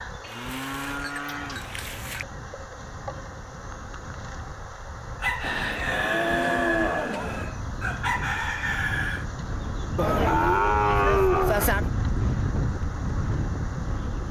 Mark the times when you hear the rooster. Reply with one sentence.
The rooster can be heard from 5.2 to 9.2 s.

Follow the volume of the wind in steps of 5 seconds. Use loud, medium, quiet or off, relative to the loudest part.
quiet, medium, loud.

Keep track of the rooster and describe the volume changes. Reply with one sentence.
The loudness of the rooster goes down, then up.